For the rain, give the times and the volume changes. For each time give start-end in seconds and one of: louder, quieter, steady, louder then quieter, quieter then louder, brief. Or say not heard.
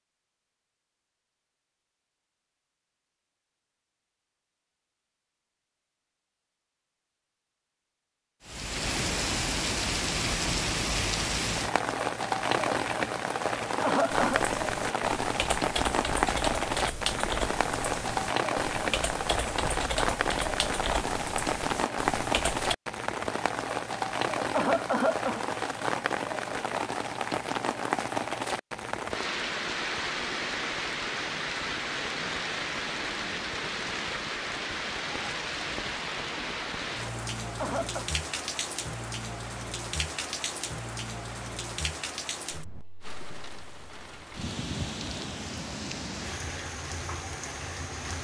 8.4-48.1 quieter.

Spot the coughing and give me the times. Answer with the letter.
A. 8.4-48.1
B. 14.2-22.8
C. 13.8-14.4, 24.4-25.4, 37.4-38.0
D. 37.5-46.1
C.